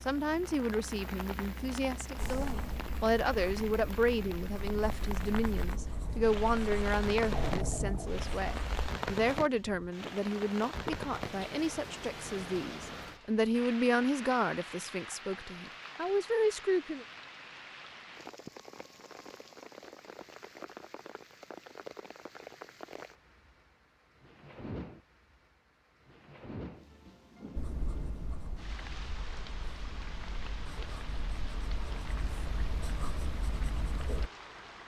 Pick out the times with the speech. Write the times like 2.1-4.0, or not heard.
0.1-17.1.